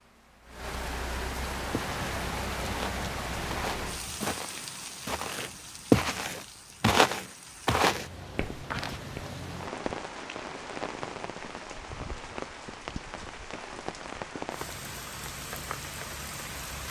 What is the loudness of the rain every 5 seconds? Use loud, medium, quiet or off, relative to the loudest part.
loud, medium, loud, loud.